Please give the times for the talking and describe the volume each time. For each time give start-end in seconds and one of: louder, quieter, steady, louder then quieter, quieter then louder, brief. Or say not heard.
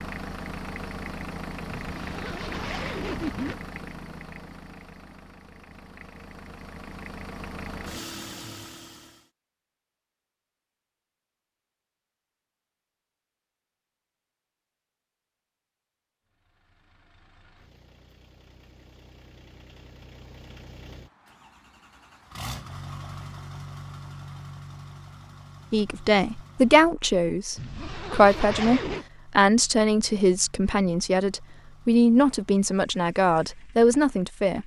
25.7-34.6 steady.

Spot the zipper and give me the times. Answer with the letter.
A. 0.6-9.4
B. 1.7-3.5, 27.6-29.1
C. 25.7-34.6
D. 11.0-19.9
B.